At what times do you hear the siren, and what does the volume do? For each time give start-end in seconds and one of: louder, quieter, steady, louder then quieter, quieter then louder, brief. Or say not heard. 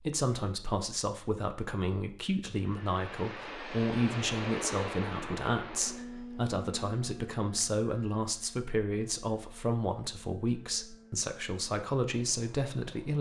not heard.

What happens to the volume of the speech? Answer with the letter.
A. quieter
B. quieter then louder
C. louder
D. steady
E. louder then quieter
D.